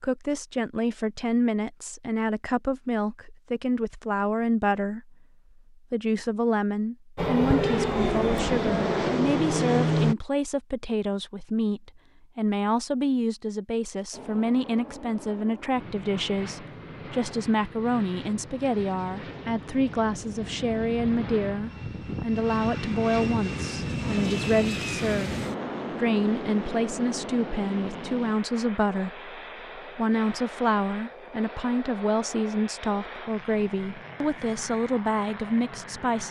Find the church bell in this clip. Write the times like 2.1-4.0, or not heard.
not heard.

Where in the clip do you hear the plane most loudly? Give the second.
10 s.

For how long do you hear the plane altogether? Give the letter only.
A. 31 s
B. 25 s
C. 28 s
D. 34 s
B.